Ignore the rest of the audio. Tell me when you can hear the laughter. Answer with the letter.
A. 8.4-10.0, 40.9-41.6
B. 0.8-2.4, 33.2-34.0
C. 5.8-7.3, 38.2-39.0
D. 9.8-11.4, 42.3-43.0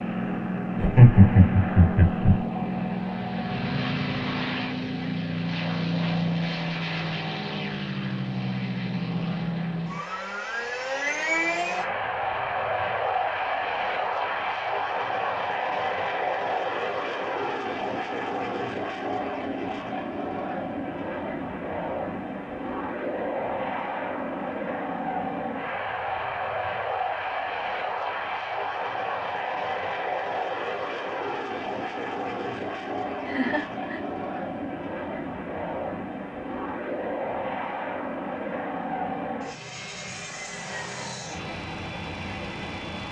B.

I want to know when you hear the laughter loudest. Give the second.
1 s.